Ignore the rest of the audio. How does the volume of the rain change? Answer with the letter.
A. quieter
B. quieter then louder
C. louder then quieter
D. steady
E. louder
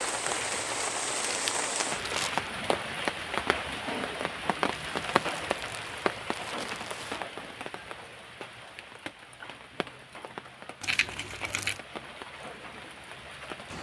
A.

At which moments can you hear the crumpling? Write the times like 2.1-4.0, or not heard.
0.0-2.5, 4.8-7.2, 10.8-11.8.